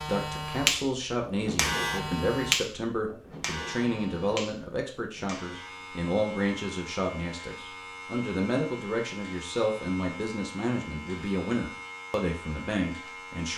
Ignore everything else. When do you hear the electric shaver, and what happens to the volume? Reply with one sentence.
The electric shaver can be heard from 0.0 to 13.5 s, getting quieter.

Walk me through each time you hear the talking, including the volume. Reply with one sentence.
You can hear the talking from 0.0 to 13.5 s, at a steady volume.